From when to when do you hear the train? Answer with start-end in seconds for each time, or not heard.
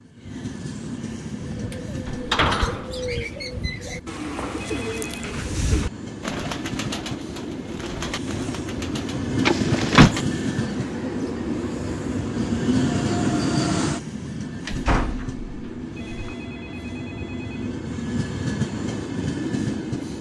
0.0-20.1.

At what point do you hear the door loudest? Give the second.
10 s.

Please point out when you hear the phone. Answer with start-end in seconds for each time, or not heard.
4.6-5.3, 15.9-17.8.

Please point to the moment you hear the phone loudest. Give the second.
5 s.